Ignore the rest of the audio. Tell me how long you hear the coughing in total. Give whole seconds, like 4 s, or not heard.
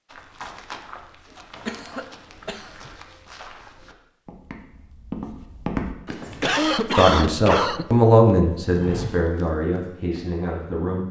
3 s.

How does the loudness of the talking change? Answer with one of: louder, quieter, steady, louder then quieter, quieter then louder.
louder then quieter.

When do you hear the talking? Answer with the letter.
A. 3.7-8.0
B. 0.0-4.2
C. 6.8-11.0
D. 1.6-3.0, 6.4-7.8
C.